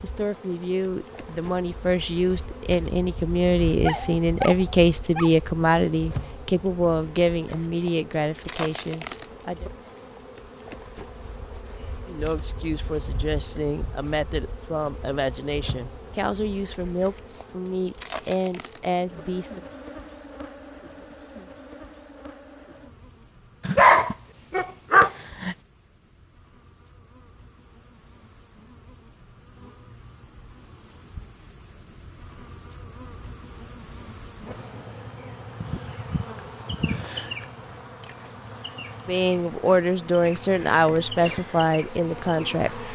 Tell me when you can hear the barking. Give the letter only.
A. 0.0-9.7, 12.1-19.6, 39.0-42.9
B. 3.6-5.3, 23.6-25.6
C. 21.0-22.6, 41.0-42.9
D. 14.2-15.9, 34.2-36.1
B.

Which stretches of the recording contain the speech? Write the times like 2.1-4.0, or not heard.
0.0-9.7, 12.1-19.6, 39.0-42.9.